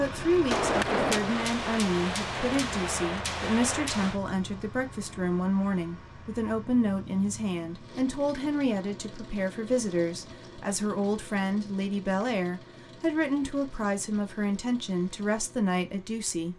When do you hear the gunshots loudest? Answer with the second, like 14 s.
1 s.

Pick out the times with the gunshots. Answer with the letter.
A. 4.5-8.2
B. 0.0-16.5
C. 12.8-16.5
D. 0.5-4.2
D.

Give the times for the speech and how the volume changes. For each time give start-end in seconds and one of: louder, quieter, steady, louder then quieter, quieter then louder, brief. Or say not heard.
0.0-16.5 steady.